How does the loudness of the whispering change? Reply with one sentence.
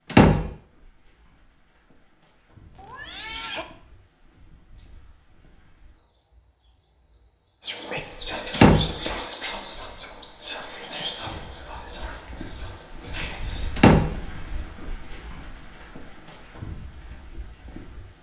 The volume of the whispering goes down.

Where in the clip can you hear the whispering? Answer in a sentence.
You can hear the whispering from 7.6 to 13.9 s.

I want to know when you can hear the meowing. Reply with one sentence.
You can hear the meowing from 2.7 to 3.6 s.